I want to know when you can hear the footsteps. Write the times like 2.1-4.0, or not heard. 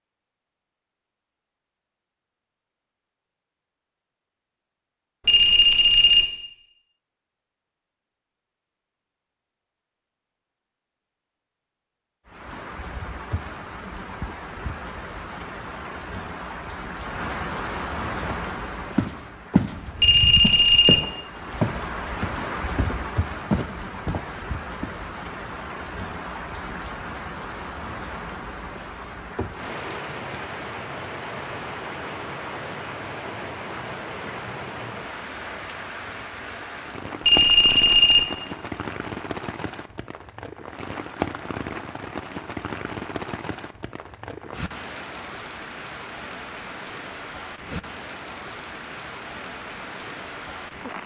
18.2-19.8, 20.4-24.9.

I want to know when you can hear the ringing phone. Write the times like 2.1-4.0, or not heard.
5.2-6.2, 20.0-21.0, 37.2-38.2.